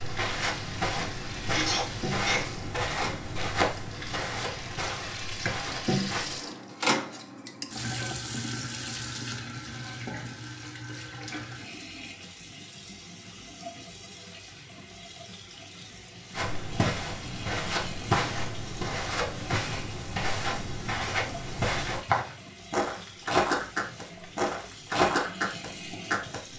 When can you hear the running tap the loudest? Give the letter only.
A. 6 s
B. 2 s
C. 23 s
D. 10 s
A.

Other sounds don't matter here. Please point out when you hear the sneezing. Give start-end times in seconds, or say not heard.
1.4-2.7.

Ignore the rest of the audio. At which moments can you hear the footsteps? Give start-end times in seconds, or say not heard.
0.0-6.4, 16.3-26.5.